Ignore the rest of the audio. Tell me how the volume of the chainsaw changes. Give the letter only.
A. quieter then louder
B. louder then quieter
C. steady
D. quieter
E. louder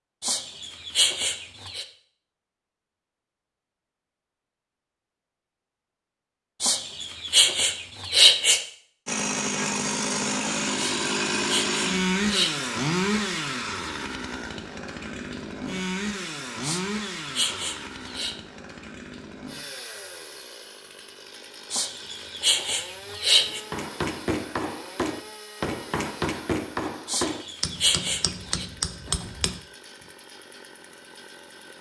D.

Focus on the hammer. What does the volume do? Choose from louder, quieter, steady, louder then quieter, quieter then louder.
steady.